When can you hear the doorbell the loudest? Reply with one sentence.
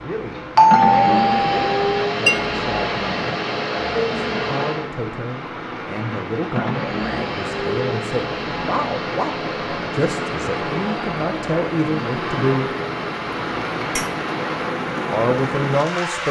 The loudest moment of the doorbell is at 1 second.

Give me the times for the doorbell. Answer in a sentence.
The doorbell can be heard from 0.6 to 2.0 s.